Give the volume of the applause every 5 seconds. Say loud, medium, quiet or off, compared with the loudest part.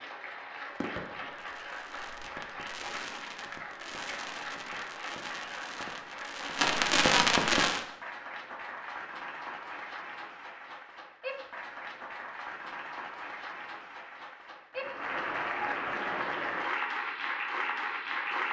medium, medium, medium, loud.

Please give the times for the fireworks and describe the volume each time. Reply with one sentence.
You can hear the fireworks from 0.8 to 7.8 s, getting louder.